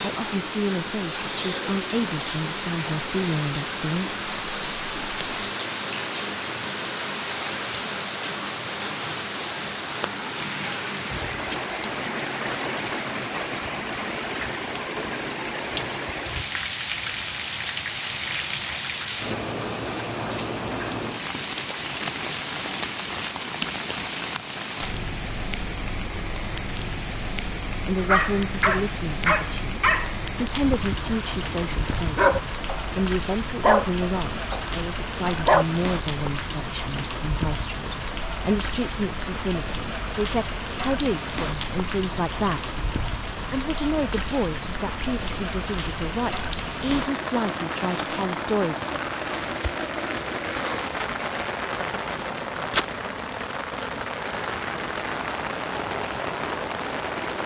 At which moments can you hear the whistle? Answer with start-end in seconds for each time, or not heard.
not heard.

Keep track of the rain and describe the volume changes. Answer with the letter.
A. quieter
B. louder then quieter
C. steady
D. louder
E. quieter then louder
C.